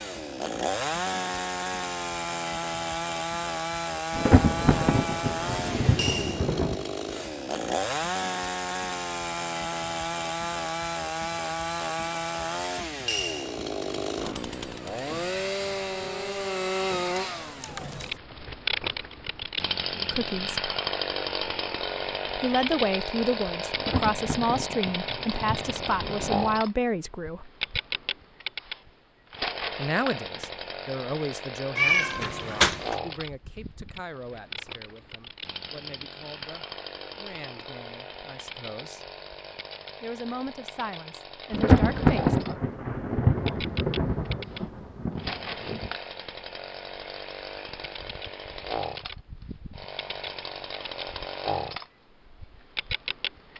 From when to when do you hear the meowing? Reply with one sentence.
The meowing can be heard from 31.8 to 33.0 s.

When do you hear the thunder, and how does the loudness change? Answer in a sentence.
You can hear the thunder briefly from 4.2 to 6.8 s; briefly from 23.8 to 26.5 s; and from 41.5 to 45.9 s, getting quieter.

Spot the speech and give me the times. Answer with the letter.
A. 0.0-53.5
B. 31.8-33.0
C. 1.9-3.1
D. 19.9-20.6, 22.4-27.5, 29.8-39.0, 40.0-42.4
D.